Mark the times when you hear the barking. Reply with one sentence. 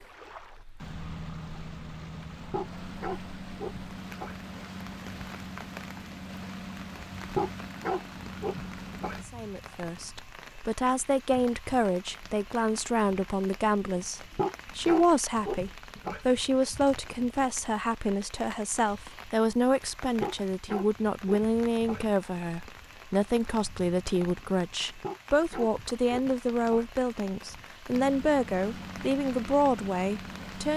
You can hear the barking from 2.5 to 4.5 s, from 7.2 to 9.3 s, from 14.3 to 16.3 s, from 20.1 to 22.1 s and from 24.9 to 26.9 s.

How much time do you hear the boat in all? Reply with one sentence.
You can hear the boat for 12 seconds altogether.